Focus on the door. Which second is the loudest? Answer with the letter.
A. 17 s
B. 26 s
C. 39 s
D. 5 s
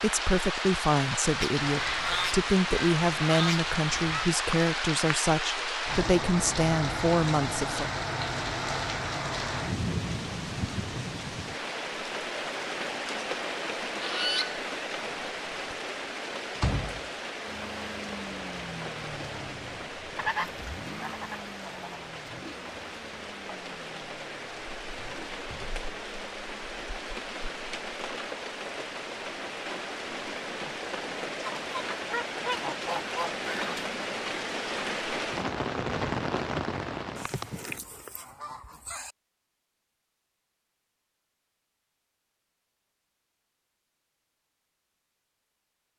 A.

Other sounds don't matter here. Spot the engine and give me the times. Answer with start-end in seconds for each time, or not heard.
17.4-26.6.